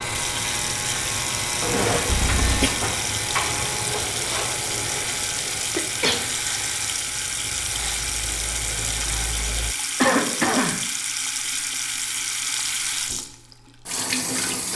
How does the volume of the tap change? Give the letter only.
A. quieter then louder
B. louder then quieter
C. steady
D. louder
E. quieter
C.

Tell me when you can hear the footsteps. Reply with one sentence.
You can't hear the footsteps here.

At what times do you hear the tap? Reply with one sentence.
You can hear the tap from 0.0 to 14.7 s.